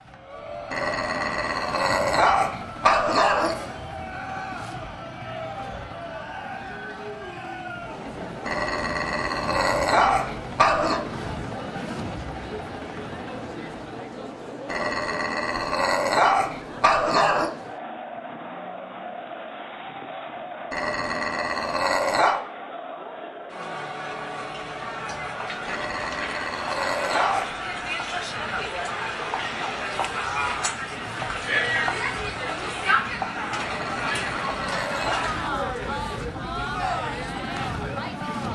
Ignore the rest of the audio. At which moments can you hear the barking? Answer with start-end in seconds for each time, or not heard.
0.7-3.5, 8.4-11.0, 14.7-17.5, 20.7-22.4, 25.6-27.6, 33.5-35.3.